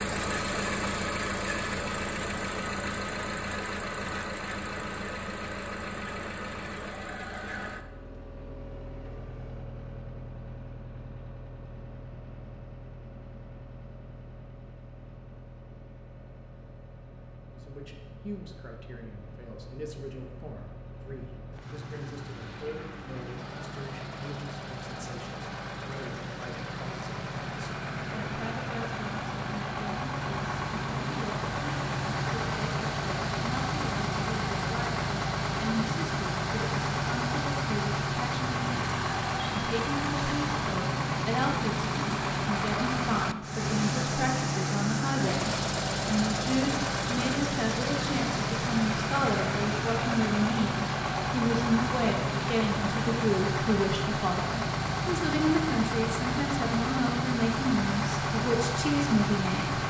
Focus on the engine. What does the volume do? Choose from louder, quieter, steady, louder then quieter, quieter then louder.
quieter then louder.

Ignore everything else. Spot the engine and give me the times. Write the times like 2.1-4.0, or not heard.
0.0-59.8.